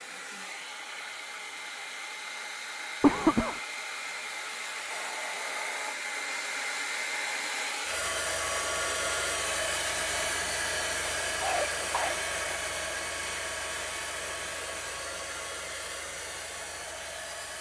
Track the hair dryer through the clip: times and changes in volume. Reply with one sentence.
You can hear the hair dryer from 0.0 to 17.5 s, getting louder then quieter.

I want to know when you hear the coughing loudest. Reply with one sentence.
The loudest moment of the coughing is at 3 seconds.